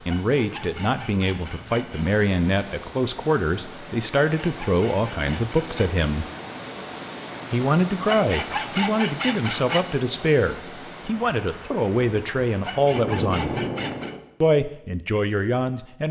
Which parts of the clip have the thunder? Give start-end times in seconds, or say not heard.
12.8-14.2.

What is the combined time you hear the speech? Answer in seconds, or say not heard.
14 s.